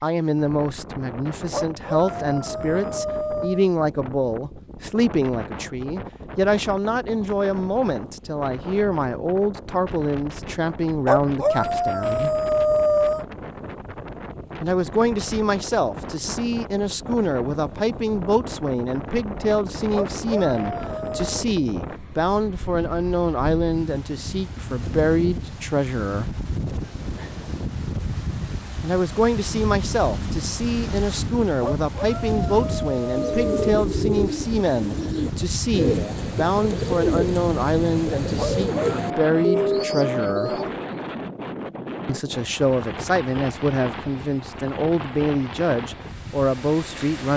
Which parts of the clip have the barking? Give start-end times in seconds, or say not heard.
1.5-3.7, 11.1-13.2, 19.9-21.3, 31.6-33.8, 38.4-40.8.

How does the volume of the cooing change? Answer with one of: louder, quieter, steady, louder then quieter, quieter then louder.
steady.